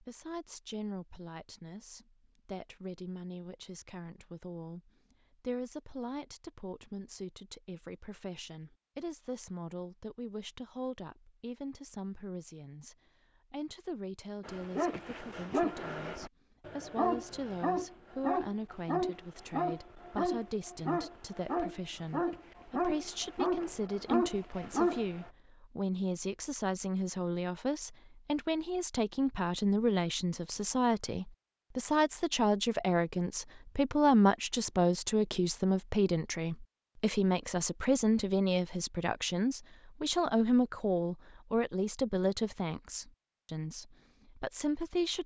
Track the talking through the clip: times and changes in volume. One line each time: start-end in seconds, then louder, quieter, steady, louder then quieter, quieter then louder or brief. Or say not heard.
0.0-45.2 louder.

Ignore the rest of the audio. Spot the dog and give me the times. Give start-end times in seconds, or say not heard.
14.4-25.3.